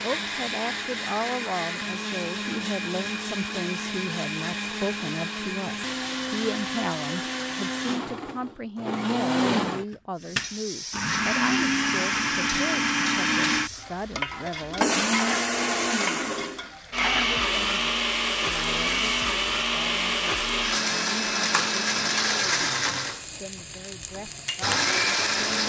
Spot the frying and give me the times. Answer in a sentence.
The frying can be heard from 10.2 to 25.4 s.